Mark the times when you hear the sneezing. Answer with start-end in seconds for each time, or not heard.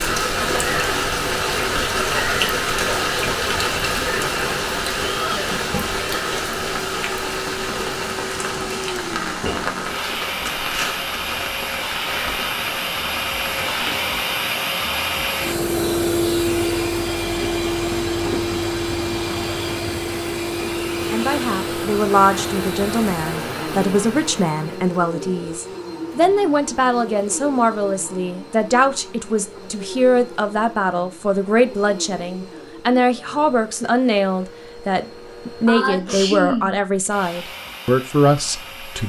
35.6-36.8.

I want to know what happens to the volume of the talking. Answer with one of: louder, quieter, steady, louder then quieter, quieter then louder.
steady.